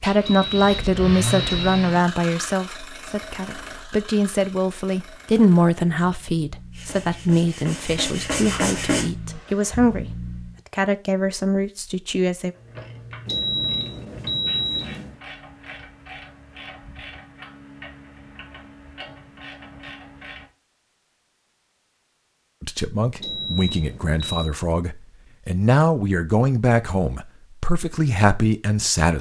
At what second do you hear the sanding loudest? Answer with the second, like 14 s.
9 s.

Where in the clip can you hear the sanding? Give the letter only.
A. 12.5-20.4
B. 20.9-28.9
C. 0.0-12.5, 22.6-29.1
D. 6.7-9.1
D.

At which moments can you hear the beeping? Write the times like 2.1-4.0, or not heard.
0.2-1.9, 13.2-15.2, 23.2-24.5.